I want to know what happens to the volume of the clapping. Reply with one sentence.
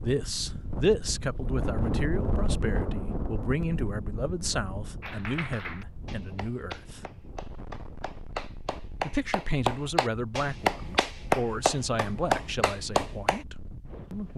The volume of the clapping goes up.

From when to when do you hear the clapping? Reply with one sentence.
The clapping can be heard from 5.0 to 13.4 s.